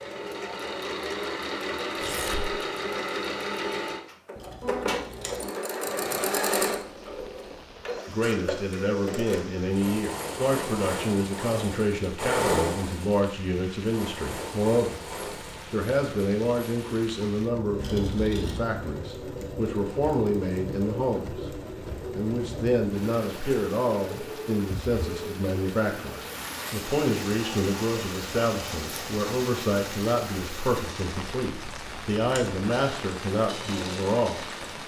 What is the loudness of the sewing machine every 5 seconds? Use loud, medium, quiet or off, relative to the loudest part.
loud, loud, loud, medium, medium, medium, medium.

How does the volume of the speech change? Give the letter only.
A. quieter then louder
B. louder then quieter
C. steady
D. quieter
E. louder
C.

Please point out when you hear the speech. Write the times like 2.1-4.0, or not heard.
8.1-15.0, 15.7-34.4.